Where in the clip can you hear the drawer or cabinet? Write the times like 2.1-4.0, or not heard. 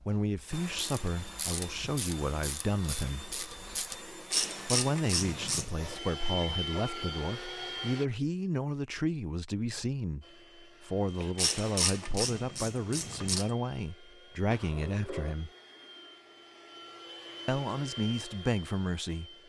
14.5-15.3.